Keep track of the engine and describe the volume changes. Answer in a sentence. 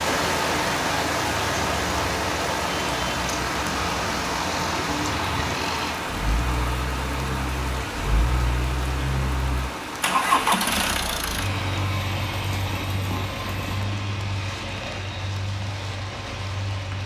The volume of the engine goes up, then down.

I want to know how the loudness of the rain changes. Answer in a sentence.
The loudness of the rain goes down.